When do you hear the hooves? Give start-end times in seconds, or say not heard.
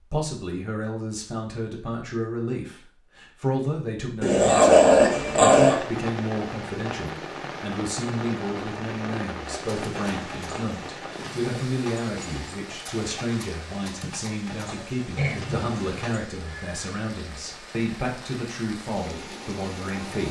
9.5-16.2.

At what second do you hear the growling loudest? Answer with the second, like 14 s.
5 s.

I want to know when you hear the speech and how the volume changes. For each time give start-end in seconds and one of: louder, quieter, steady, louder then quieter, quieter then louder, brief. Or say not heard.
0.1-20.2 steady.